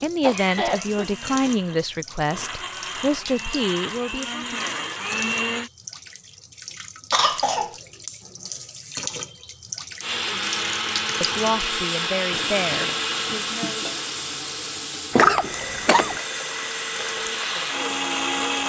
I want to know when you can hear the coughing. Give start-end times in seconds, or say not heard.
0.2-1.1, 7.1-7.8, 15.1-16.1.